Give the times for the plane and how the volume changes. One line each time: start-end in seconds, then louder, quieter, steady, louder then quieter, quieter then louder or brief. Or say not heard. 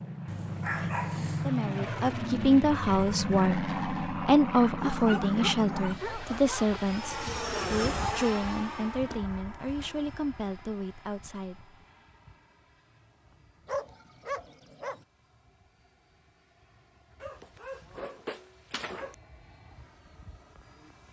0.0-21.0 quieter then louder.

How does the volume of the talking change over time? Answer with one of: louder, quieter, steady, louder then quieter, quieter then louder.
quieter.